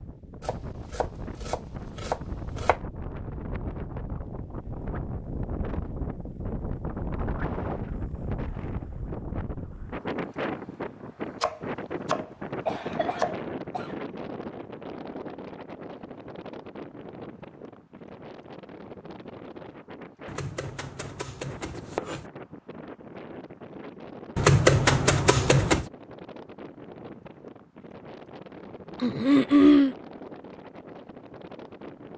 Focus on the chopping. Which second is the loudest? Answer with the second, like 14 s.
25 s.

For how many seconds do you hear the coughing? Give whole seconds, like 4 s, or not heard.
2 s.